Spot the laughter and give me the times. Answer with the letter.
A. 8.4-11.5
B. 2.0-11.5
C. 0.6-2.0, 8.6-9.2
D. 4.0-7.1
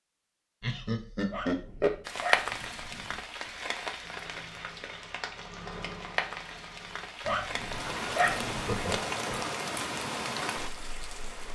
C.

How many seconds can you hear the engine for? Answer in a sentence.
You can hear the engine for 3 seconds altogether.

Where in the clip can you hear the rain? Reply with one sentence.
You can hear the rain from 2.0 to 11.5 s.